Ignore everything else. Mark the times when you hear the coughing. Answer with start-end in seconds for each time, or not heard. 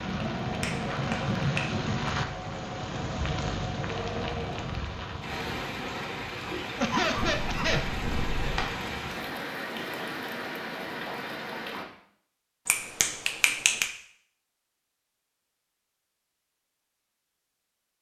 6.8-7.8.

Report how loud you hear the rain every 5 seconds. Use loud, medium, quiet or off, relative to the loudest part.
loud, loud, loud, off.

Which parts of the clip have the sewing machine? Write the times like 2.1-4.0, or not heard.
0.0-5.4.